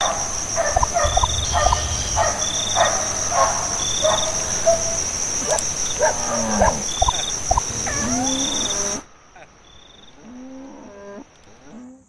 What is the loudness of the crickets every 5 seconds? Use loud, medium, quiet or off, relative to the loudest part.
loud, loud, quiet.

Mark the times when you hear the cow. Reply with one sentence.
You can hear the cow from 5.9 to 12.0 s.